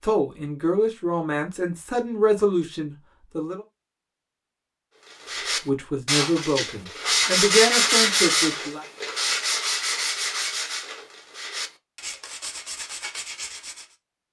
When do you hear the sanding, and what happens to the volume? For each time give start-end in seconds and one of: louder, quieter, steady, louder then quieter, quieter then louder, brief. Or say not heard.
5.0-13.9 louder then quieter.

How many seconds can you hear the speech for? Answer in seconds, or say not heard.
7 s.